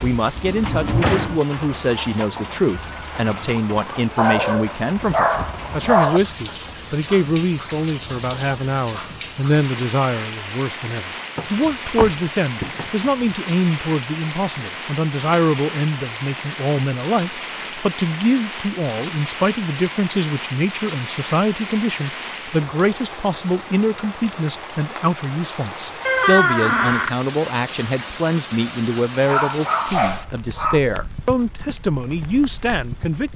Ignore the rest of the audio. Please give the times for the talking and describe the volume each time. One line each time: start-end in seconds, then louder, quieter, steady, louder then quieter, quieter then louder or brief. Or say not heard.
0.0-33.3 steady.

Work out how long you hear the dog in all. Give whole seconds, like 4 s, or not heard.
4 s.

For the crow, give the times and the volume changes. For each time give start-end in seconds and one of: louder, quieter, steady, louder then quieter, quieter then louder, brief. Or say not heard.
not heard.